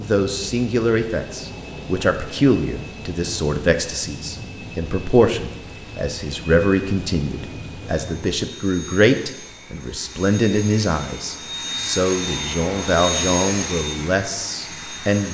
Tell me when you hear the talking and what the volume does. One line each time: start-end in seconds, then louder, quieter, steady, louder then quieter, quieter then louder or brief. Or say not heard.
0.0-15.3 steady.